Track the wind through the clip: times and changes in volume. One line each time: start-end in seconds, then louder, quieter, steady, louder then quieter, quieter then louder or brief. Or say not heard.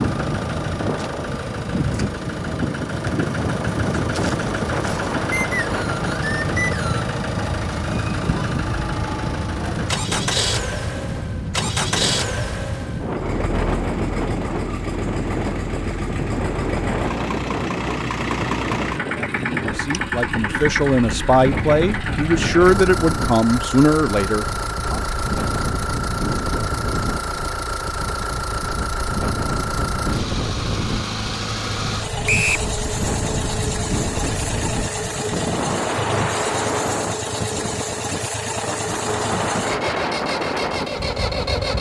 0.0-41.7 steady.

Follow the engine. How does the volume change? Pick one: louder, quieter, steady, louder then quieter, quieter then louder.
steady.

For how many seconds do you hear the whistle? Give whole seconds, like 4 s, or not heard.
2 s.